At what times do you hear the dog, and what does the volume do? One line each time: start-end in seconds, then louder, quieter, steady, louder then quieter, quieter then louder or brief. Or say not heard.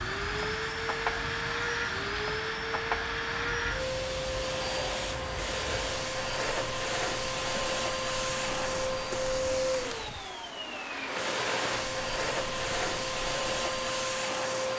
not heard.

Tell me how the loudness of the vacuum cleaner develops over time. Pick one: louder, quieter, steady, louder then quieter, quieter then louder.
steady.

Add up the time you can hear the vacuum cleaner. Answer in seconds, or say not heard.
15 s.